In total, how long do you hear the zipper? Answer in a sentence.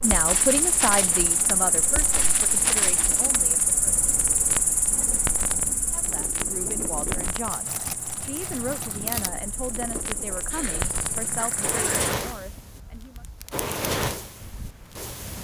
The zipper can be heard for 2 seconds in total.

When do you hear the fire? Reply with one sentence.
You can hear the fire from 0.0 to 15.4 s.